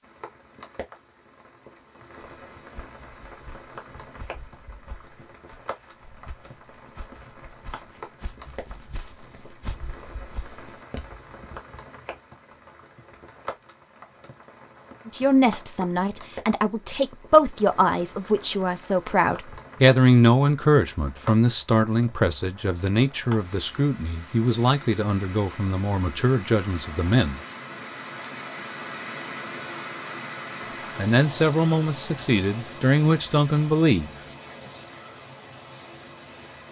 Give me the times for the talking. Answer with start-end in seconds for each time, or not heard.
15.1-27.4, 30.9-34.1.